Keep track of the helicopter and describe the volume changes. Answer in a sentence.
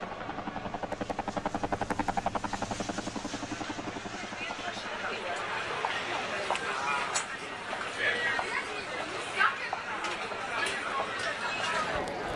The volume of the helicopter goes down.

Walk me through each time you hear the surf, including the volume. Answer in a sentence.
The surf can't be heard in this clip.